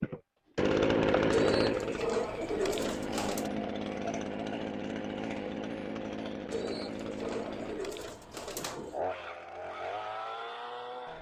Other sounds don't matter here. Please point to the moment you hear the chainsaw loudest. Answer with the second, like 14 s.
1 s.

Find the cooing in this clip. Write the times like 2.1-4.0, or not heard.
1.3-3.5, 6.5-9.0.